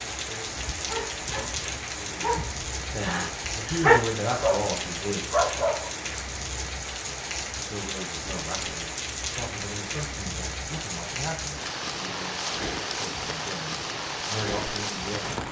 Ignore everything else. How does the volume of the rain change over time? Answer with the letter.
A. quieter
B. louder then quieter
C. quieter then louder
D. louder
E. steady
E.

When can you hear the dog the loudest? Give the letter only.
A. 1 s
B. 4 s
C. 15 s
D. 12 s
B.